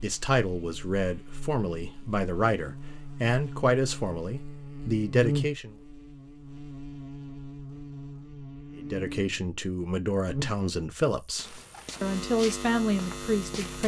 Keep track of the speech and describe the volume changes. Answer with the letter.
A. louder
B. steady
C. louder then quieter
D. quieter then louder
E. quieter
B.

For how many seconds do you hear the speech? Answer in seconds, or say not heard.
11 s.